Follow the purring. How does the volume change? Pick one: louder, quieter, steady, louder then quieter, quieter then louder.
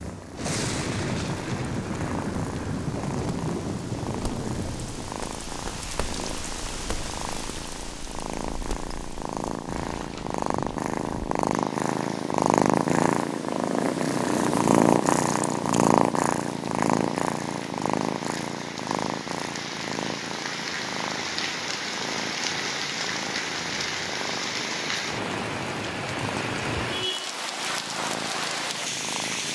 louder then quieter.